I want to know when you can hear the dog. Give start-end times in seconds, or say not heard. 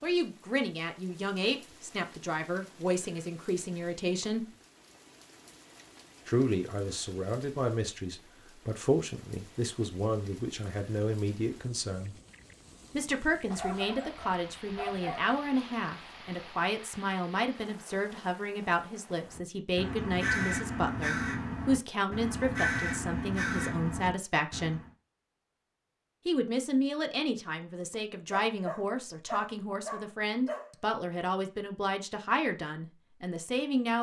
13.5-15.3, 28.3-30.8.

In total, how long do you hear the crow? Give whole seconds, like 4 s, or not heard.
6 s.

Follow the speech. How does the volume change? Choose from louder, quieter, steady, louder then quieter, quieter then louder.
steady.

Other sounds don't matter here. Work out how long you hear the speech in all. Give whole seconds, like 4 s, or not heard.
30 s.